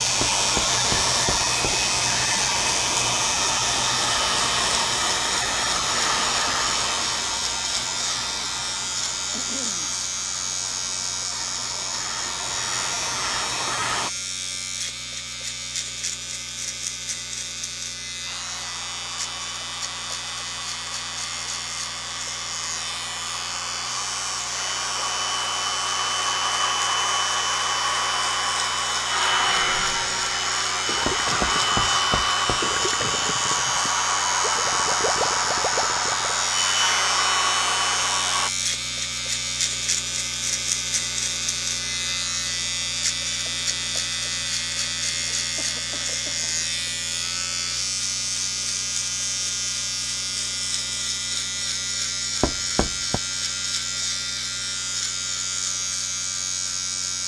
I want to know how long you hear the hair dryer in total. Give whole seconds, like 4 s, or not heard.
34 s.